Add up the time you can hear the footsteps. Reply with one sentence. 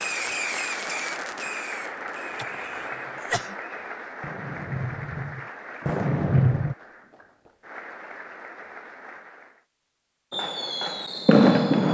You can't hear the footsteps here.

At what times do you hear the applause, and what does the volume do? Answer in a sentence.
The applause can be heard from 0.0 to 9.7 s, getting quieter.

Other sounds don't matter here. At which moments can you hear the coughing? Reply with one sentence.
You can hear the coughing from 2.4 to 3.5 s.